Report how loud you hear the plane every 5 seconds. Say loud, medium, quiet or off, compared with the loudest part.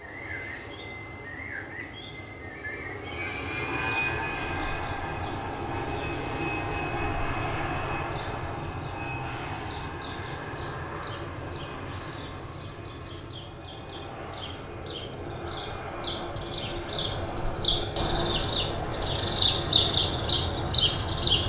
loud, loud, medium, loud, loud.